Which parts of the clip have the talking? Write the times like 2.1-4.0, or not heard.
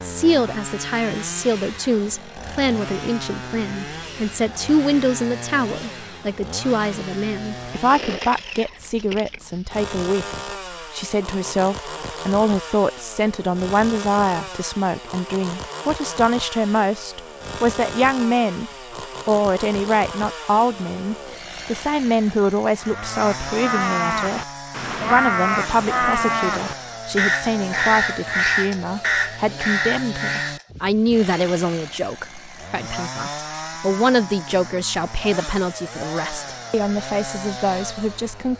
0.0-24.4, 25.1-38.5.